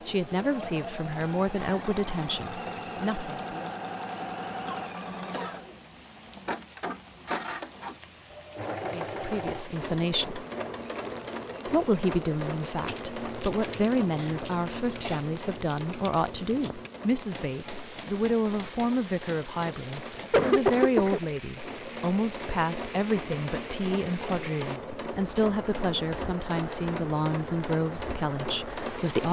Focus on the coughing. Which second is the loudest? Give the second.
21 s.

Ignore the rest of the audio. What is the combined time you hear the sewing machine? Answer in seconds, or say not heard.
29 s.